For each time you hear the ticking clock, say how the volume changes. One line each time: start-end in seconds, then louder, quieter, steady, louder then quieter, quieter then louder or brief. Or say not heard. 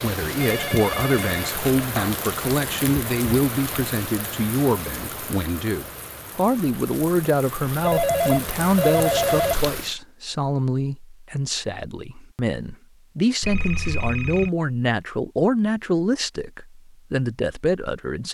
not heard.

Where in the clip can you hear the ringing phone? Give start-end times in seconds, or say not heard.
0.4-2.2, 7.8-9.6, 13.4-14.5.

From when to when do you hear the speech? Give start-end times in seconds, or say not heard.
0.0-18.2.